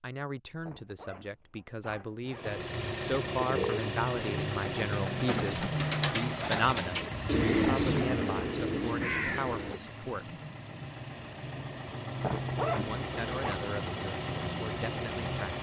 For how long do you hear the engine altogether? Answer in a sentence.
You can hear the engine for 13 seconds altogether.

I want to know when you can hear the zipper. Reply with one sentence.
You can hear the zipper from 0.7 to 2.6 s and from 12.2 to 13.6 s.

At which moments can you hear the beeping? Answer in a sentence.
The beeping can't be heard in this clip.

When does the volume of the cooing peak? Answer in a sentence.
The volume of the cooing peaks at 8 seconds.